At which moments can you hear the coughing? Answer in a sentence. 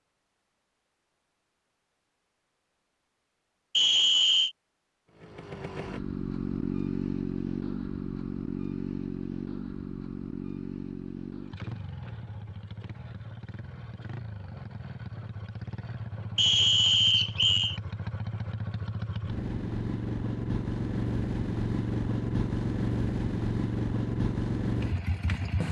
You can't hear the coughing here.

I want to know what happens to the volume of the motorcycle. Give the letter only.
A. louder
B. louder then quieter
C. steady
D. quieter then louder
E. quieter
D.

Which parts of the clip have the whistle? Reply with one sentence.
The whistle can be heard from 3.8 to 4.5 s and from 16.4 to 17.8 s.